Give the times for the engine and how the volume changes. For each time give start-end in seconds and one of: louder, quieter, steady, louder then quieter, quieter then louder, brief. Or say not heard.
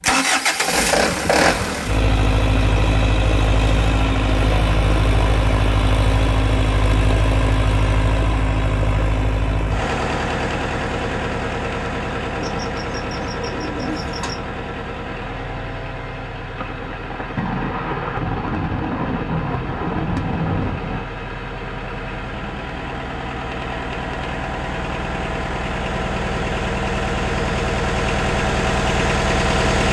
0.0-29.8 quieter then louder.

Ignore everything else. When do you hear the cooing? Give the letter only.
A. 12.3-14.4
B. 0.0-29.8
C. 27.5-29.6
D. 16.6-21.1
A.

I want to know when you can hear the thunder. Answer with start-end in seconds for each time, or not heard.
16.6-21.1.